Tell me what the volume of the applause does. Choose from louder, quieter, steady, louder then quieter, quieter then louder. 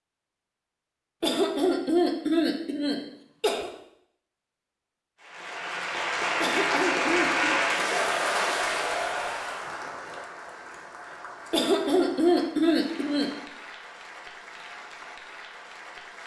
quieter.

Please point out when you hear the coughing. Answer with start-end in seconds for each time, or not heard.
1.2-3.7, 6.4-7.5, 11.5-13.3.